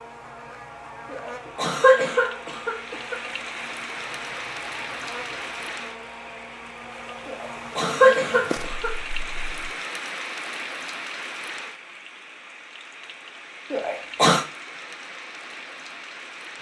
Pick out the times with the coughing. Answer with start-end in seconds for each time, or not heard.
1.1-3.2, 7.2-8.9, 13.7-14.4.